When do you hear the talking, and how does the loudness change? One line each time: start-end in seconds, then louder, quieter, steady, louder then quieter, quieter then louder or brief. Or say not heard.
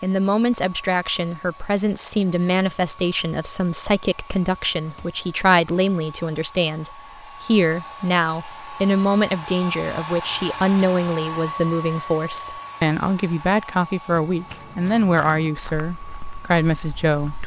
0.0-17.4 steady.